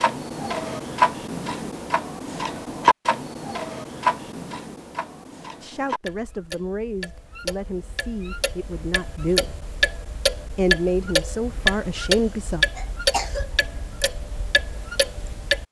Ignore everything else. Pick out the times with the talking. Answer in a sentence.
You can hear the talking from 5.6 to 9.6 s and from 10.5 to 12.7 s.